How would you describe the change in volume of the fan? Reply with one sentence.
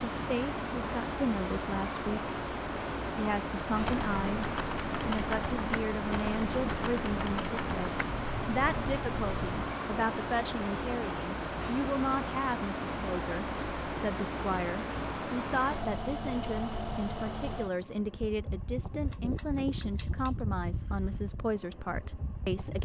The volume of the fan goes down.